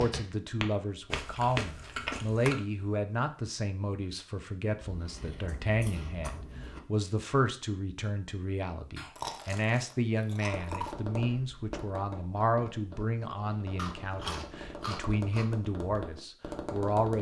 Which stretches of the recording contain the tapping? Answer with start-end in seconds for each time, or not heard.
0.0-2.6, 10.4-17.1.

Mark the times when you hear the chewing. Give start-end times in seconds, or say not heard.
1.1-2.6, 4.8-6.8, 8.9-10.9, 13.8-15.6.